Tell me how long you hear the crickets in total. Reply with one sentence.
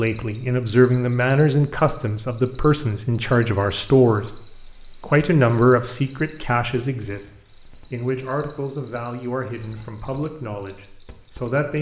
The crickets can be heard for 12 seconds in total.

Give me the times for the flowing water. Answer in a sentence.
The flowing water can't be heard in this clip.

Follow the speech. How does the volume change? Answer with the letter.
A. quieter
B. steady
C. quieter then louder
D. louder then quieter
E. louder
A.